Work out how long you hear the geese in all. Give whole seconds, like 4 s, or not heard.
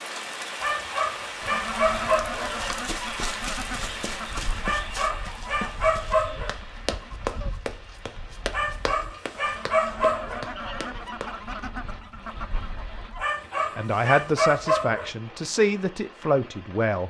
12 s.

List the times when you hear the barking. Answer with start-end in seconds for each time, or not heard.
0.6-2.5, 4.6-6.5, 8.5-10.4, 13.2-15.1.